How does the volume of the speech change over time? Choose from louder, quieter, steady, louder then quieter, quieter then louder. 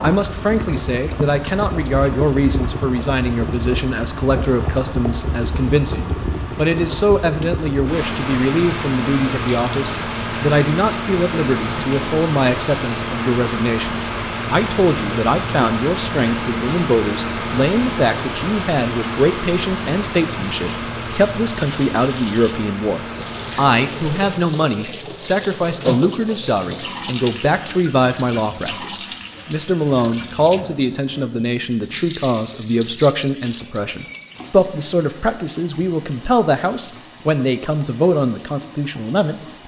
steady.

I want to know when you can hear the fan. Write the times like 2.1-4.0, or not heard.
0.0-24.4.